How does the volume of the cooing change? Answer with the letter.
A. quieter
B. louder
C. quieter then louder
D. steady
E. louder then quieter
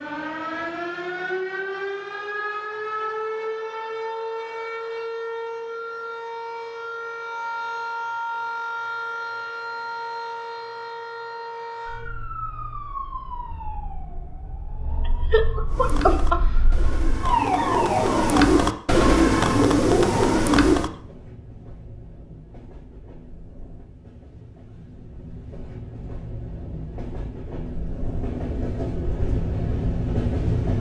B.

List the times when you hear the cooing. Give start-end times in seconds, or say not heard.
15.7-20.9.